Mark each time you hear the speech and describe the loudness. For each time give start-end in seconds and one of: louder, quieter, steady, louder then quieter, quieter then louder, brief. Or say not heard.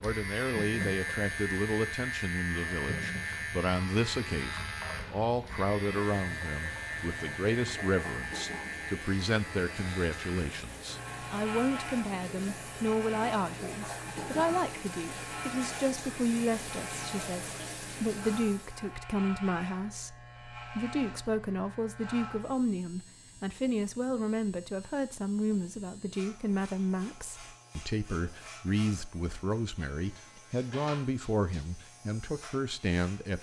0.0-33.3 steady.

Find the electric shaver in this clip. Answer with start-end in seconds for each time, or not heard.
0.0-33.3.